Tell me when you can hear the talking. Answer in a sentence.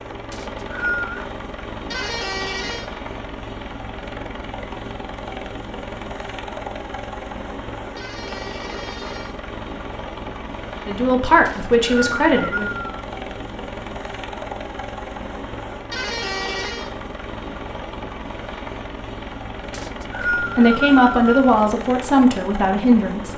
The talking can be heard from 10.8 to 12.7 s and from 20.4 to 23.3 s.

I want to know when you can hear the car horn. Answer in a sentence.
The car horn can be heard from 1.9 to 2.9 s, from 8.0 to 9.3 s and from 15.9 to 16.9 s.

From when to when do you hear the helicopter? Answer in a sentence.
The helicopter can be heard from 0.0 to 23.3 s.